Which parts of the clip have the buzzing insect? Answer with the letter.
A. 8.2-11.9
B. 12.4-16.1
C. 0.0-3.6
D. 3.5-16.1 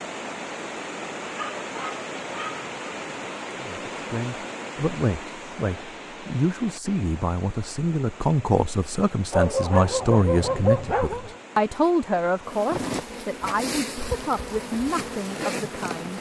B.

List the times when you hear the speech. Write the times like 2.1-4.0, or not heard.
3.5-16.1.